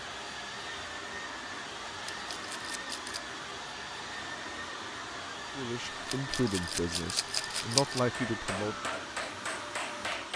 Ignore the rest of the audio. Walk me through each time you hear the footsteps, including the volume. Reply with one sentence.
You can't hear the footsteps here.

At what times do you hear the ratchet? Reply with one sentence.
The ratchet can't be heard in this clip.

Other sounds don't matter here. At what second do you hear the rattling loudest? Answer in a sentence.
The volume of the rattling peaks at 8 seconds.